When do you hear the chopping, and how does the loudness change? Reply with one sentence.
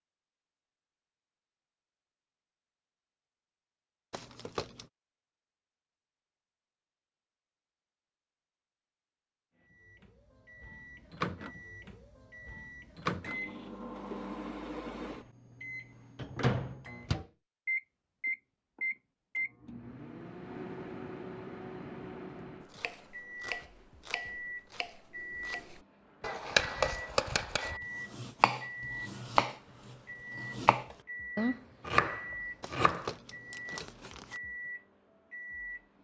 The chopping can be heard from 22.7 to 33.1 s, getting louder.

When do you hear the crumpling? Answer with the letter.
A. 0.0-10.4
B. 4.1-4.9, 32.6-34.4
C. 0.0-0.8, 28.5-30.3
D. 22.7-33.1
B.